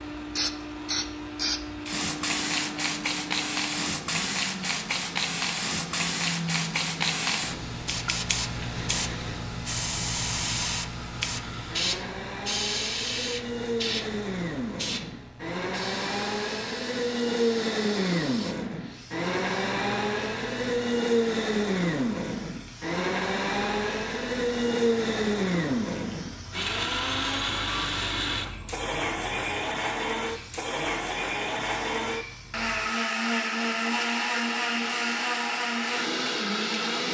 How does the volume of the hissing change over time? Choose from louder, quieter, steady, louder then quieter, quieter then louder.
quieter.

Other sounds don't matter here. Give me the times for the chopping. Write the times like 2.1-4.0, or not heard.
not heard.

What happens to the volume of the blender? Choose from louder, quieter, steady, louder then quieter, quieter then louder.
louder.